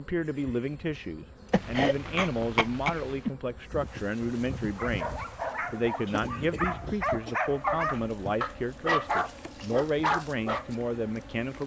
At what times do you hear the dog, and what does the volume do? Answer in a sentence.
The dog can be heard from 4.8 to 10.7 s, getting louder.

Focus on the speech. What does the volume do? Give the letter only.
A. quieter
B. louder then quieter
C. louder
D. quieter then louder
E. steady
E.